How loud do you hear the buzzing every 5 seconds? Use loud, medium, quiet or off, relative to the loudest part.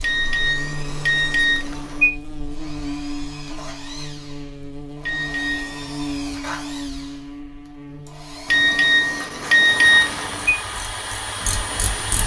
loud, loud, off.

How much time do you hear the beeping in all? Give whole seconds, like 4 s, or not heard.
5 s.